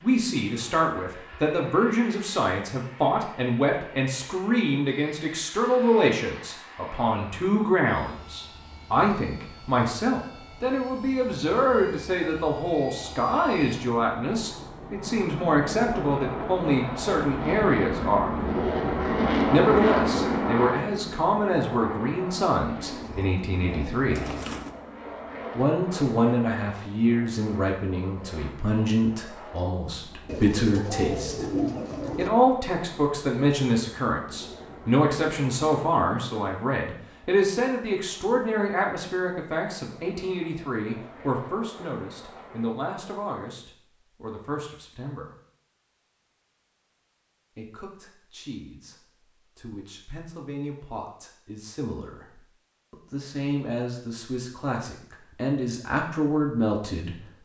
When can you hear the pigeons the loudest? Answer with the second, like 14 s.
32 s.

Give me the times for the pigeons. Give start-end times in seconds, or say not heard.
22.8-24.8, 30.2-32.3.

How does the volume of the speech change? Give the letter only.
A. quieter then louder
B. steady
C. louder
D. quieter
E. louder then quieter
D.